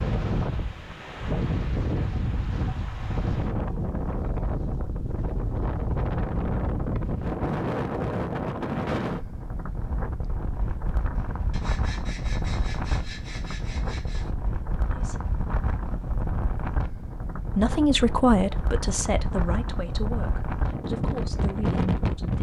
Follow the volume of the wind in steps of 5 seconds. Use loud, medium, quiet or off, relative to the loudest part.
loud, loud, medium, medium, loud.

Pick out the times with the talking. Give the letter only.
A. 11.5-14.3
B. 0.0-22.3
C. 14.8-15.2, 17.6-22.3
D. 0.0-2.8
C.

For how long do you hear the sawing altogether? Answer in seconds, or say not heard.
3 s.